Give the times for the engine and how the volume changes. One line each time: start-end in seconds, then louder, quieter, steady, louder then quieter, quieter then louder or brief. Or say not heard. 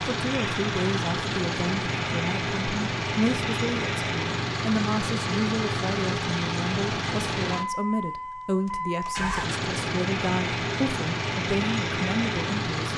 0.0-12.9 steady.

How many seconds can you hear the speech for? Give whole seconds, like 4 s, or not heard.
13 s.